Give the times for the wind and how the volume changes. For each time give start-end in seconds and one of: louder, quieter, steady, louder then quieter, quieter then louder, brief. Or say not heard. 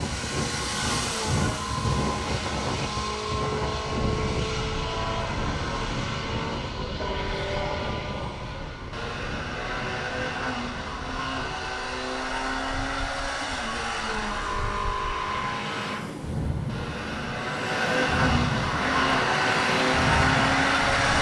0.0-21.1 quieter then louder.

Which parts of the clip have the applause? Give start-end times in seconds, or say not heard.
18.6-21.1.